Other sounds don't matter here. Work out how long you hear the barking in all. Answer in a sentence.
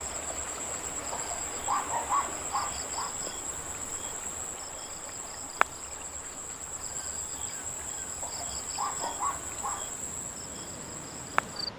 You can hear the barking for 4 seconds altogether.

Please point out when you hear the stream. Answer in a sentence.
The stream can be heard from 0.0 to 11.7 s.